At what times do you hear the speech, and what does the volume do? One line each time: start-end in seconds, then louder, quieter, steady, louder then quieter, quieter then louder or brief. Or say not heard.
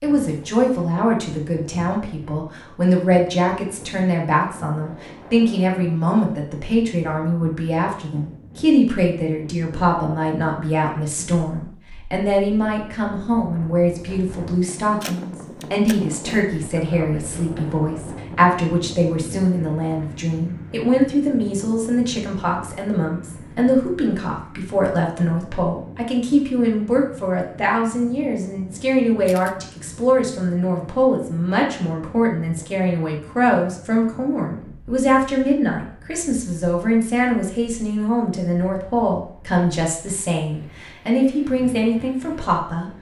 0.0-42.9 steady.